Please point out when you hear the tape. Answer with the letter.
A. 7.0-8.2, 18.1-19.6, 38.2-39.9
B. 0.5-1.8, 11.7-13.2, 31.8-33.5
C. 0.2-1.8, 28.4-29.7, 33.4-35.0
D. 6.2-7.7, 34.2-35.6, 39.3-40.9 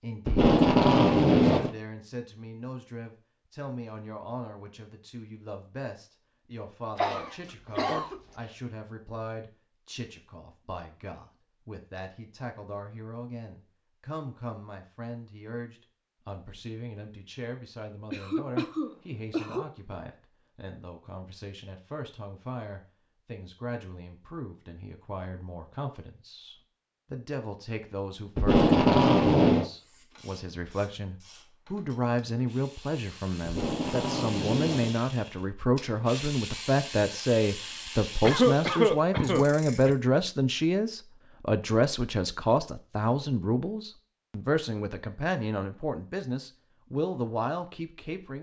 C.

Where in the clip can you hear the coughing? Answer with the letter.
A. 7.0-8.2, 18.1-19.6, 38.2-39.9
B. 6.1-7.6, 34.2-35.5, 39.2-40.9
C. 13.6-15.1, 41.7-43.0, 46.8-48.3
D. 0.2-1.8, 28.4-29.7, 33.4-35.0
A.